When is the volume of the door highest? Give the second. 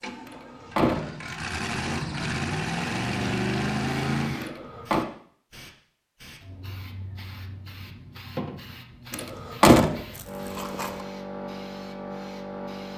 10 s.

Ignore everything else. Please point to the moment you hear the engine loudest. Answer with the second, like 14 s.
4 s.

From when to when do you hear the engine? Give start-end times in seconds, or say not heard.
0.0-4.5.